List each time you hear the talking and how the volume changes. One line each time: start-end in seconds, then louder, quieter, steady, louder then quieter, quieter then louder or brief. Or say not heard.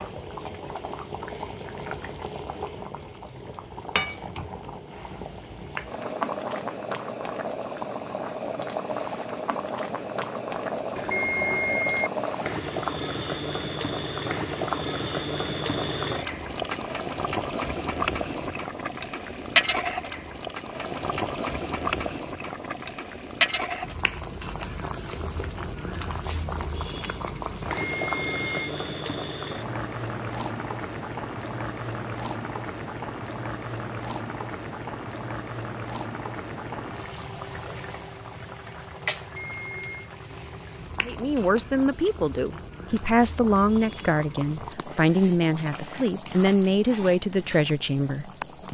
41.0-48.6 steady.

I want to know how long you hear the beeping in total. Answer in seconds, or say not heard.
3 s.